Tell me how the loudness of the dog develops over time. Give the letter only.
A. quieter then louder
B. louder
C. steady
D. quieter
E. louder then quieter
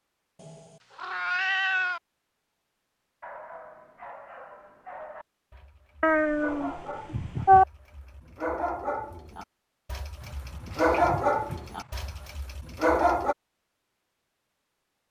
B.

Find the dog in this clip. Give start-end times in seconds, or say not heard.
3.2-13.3.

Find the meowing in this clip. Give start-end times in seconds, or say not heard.
0.4-2.0, 6.0-7.7, 10.2-12.3.